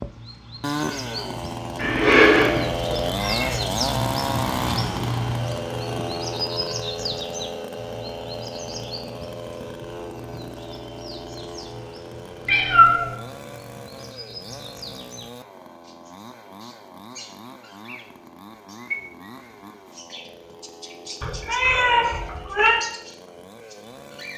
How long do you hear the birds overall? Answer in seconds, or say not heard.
24 s.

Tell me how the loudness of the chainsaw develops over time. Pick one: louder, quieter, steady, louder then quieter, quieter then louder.
quieter.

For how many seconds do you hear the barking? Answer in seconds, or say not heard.
not heard.